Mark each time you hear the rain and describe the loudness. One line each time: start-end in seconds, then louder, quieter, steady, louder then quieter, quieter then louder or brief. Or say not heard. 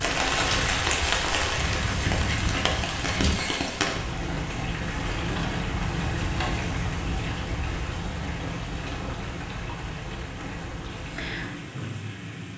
0.0-12.5 quieter.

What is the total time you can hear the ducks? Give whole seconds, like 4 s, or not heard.
3 s.